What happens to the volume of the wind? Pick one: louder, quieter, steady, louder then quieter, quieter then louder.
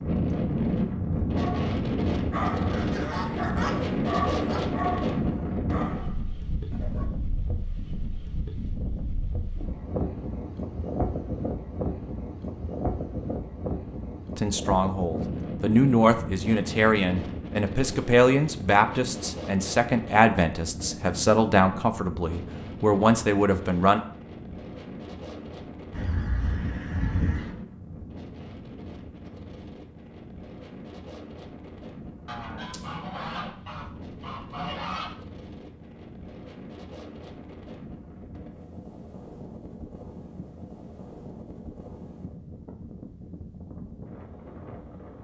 quieter.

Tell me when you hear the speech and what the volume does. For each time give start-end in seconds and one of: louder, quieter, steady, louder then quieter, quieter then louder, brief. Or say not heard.
14.3-24.0 steady.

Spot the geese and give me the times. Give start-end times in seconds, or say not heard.
2.5-4.6, 25.9-27.6, 32.2-35.1.